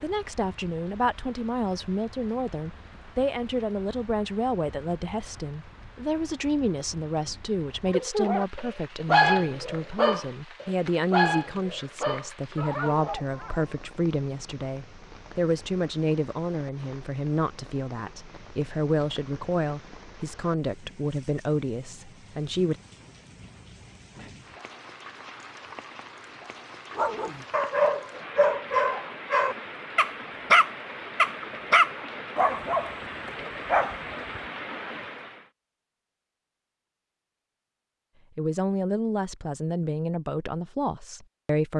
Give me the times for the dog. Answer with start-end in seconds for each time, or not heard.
7.8-13.9, 26.9-34.4.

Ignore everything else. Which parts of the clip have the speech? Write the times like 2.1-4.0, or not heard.
0.0-22.8, 38.4-41.7.